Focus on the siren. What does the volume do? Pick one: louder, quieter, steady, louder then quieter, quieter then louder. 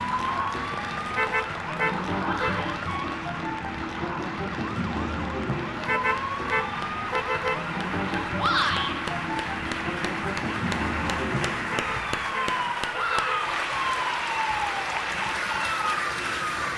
steady.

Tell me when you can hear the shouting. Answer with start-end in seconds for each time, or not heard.
2.2-2.8, 8.3-8.9, 12.9-13.4.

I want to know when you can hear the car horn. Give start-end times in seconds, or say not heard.
1.1-2.6, 5.8-7.7, 11.7-13.3.